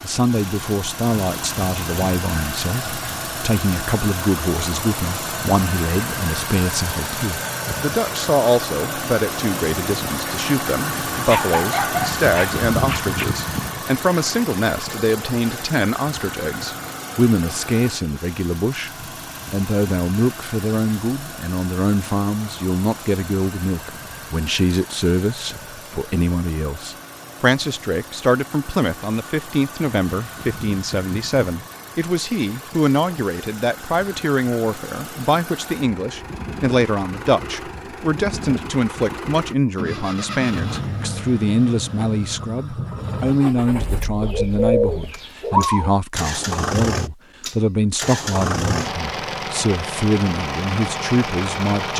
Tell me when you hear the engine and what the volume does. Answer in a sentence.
The engine can be heard from 0.0 to 51.9 s, getting quieter then louder.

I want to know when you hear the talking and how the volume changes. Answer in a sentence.
The talking can be heard from 0.0 to 51.9 s, at a steady volume.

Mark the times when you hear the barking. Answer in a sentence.
You can hear the barking from 11.2 to 13.2 s.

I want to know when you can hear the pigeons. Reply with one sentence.
You can hear the pigeons from 44.2 to 45.9 s.